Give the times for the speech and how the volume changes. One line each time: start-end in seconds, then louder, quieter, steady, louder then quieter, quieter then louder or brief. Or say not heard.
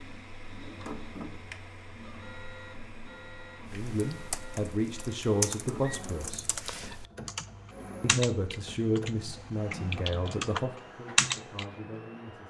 3.7-6.5 brief
8.0-12.4 quieter.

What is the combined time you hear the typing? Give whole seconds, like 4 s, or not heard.
8 s.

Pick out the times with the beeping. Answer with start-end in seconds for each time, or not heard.
not heard.